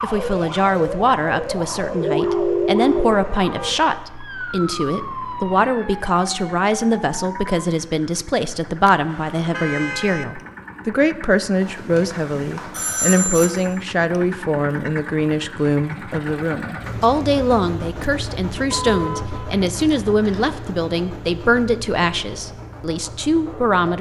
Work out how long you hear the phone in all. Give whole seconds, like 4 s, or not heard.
4 s.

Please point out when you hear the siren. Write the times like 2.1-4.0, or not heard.
0.0-7.5.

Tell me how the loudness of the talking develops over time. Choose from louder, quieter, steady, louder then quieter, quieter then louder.
steady.